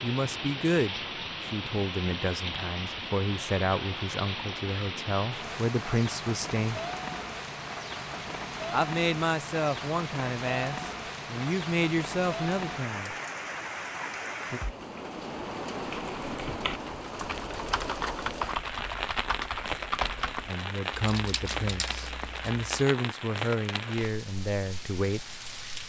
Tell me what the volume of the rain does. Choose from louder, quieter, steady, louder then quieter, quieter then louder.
steady.